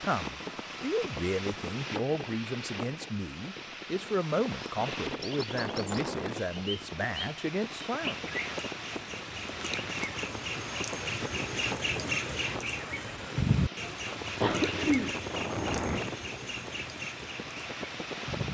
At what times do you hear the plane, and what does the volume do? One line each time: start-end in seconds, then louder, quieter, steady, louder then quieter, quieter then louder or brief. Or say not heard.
0.0-18.4 steady.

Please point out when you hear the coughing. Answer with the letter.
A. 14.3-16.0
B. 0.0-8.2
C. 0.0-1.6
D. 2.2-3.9
A.